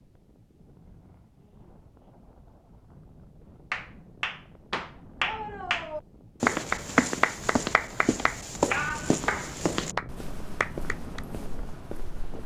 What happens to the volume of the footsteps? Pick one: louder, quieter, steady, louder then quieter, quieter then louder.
quieter.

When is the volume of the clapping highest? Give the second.
7 s.